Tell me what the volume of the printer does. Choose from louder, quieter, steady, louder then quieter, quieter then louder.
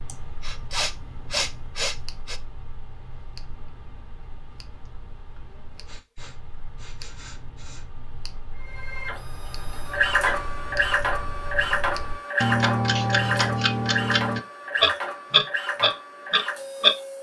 quieter.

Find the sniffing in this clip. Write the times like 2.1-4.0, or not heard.
0.1-2.4, 5.8-7.8, 12.9-13.7.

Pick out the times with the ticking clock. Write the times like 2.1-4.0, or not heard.
0.0-16.9.